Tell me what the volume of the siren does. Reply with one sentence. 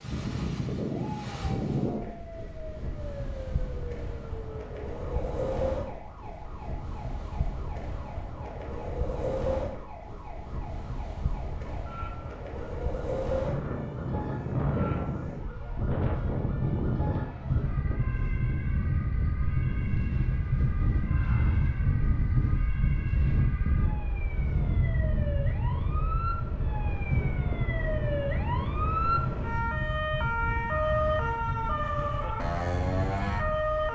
The volume of the siren goes up.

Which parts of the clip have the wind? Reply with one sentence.
You can hear the wind from 0.0 to 33.8 s.